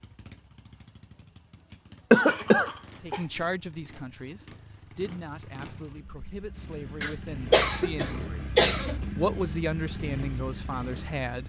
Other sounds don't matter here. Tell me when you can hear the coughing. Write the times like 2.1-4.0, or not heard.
2.1-3.2, 7.0-8.9.